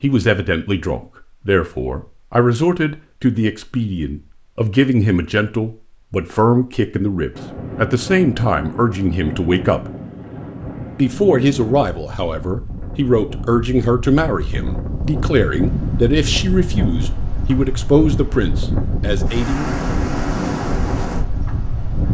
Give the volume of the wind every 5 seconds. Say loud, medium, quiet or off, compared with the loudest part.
off, medium, medium, loud, loud.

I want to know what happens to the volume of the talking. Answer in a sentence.
The loudness of the talking stays about the same.